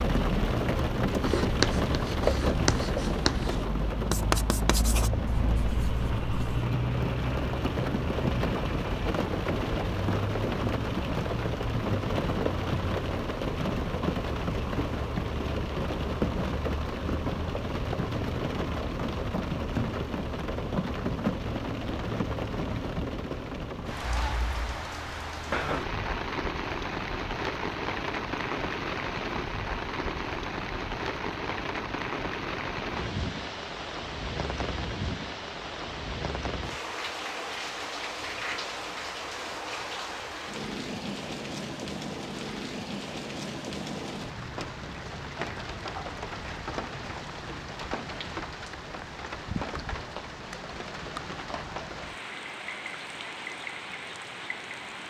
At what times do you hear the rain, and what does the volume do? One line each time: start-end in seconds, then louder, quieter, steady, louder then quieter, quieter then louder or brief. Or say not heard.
0.0-55.0 quieter.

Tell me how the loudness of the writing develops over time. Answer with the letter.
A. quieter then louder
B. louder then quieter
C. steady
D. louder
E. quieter
E.